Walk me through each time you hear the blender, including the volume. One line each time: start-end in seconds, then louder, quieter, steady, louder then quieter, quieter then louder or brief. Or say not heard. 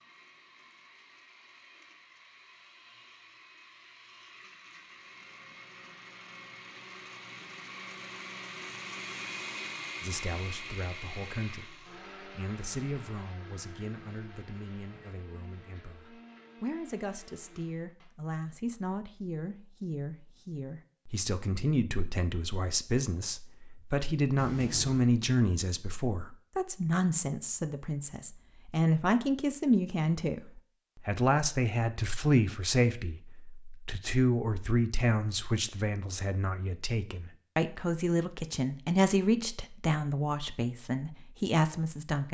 0.0-18.1 louder then quieter.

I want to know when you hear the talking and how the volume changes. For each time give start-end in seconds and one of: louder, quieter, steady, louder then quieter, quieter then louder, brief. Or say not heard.
10.0-42.2 louder.